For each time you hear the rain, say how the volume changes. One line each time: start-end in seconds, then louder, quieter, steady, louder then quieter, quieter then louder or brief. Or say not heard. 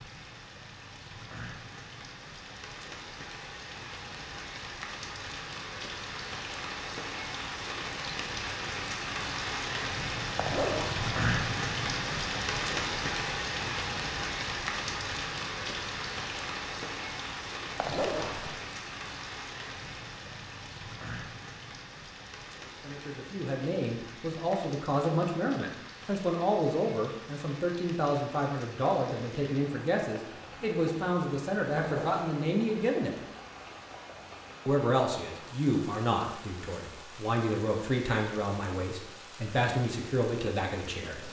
0.0-41.2 louder then quieter.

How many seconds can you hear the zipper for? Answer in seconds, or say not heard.
2 s.